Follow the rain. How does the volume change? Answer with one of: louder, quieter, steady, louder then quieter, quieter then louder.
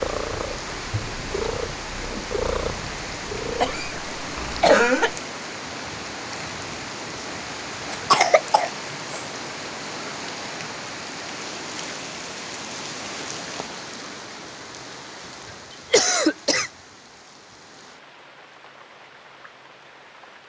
quieter.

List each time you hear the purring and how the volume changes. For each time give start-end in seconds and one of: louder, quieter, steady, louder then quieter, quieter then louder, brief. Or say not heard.
0.0-4.7 louder then quieter.